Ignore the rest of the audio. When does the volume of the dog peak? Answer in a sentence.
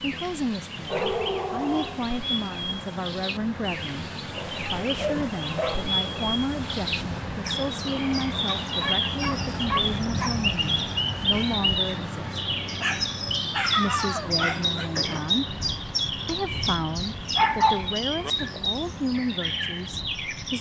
The loudest moment of the dog is at 18 seconds.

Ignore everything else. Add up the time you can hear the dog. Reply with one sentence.
You can hear the dog for 8 seconds altogether.